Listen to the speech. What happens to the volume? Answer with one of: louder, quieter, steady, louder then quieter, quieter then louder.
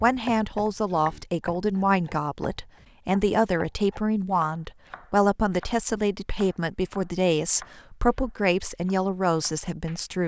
steady.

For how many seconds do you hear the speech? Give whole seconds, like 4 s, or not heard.
10 s.